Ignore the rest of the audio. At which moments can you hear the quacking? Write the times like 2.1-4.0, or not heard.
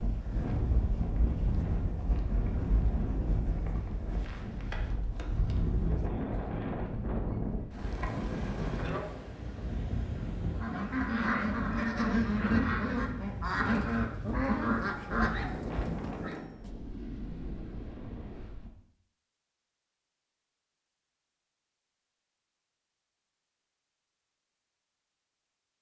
10.2-16.4.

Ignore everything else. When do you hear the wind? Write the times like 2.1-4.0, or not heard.
0.0-18.7.